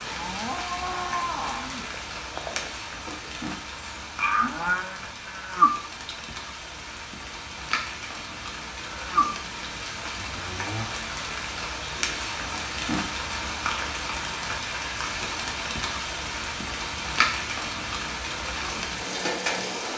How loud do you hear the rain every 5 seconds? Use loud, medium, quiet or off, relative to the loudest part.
medium, medium, loud, loud.